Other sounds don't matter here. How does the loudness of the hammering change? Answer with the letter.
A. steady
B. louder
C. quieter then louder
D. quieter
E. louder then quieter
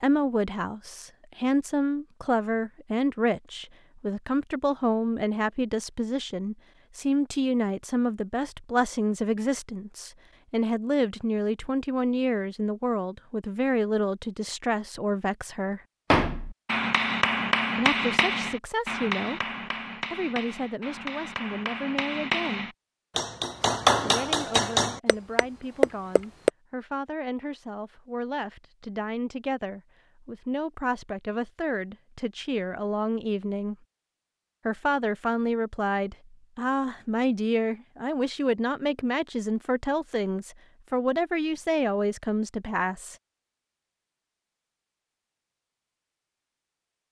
C.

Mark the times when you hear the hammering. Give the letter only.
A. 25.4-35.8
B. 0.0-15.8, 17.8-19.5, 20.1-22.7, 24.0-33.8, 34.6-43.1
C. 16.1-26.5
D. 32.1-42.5
C.